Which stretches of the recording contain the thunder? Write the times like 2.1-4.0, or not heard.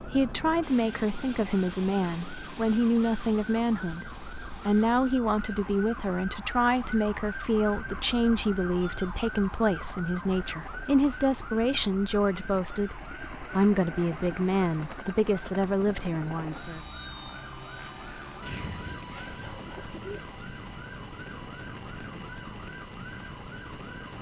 not heard.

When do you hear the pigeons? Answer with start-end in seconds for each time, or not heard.
18.4-20.4.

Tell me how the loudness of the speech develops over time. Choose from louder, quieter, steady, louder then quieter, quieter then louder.
steady.